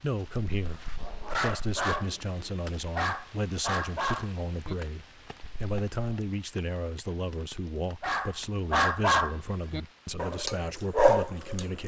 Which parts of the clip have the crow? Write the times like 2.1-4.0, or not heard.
not heard.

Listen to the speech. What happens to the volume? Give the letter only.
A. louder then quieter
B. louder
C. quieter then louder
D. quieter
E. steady
E.